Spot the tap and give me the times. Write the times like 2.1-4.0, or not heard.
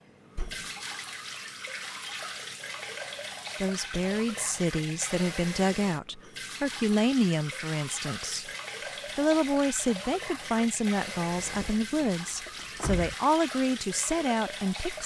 0.0-15.0.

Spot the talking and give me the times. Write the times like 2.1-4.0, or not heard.
3.6-8.5, 9.2-15.0.